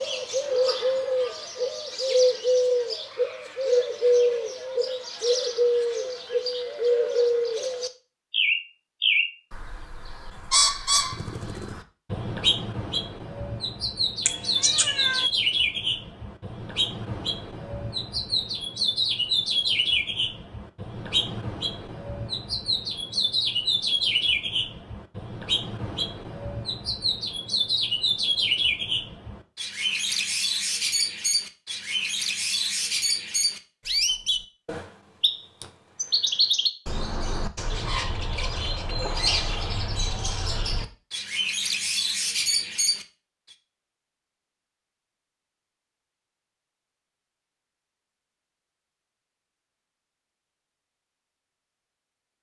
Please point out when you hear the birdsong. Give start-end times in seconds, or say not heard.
0.0-43.0.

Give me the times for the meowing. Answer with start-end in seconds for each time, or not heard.
14.2-15.3.